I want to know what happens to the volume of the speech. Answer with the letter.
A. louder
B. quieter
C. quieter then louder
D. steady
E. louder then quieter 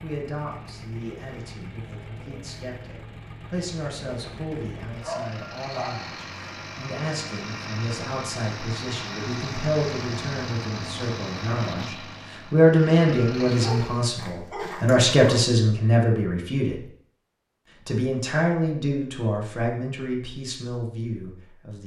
E.